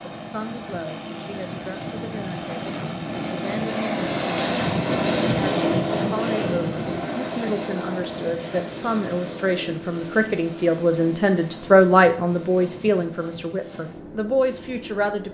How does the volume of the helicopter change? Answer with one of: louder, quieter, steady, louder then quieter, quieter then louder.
louder then quieter.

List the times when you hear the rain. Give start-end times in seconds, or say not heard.
not heard.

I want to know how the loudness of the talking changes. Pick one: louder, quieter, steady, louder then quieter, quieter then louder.
louder then quieter.